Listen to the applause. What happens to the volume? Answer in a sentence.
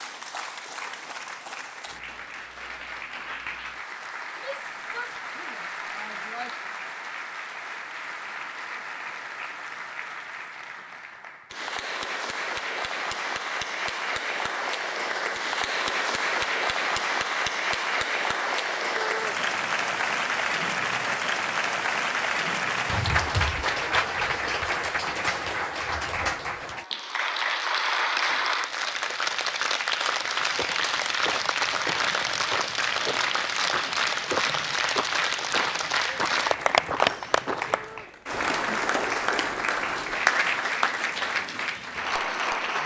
The loudness of the applause goes up.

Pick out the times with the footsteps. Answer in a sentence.
You can hear the footsteps from 30.2 to 38.0 s.